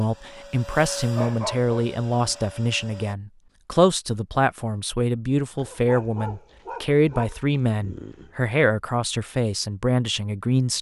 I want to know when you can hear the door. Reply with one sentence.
The door can't be heard in this clip.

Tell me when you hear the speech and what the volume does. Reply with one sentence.
You can hear the speech from 0.0 to 10.7 s, at a steady volume.